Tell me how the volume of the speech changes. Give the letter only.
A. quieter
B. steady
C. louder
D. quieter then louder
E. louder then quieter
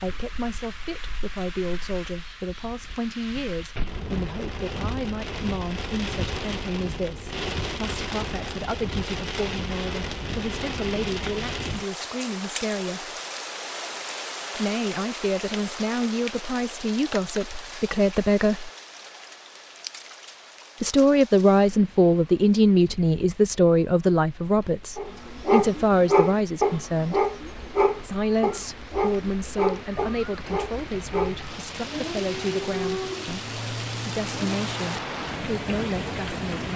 E.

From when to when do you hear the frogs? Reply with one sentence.
You can't hear the frogs here.